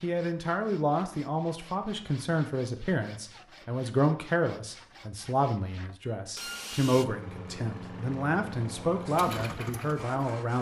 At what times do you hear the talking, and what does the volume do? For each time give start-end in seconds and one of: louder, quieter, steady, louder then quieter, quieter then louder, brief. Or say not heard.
0.0-10.5 steady.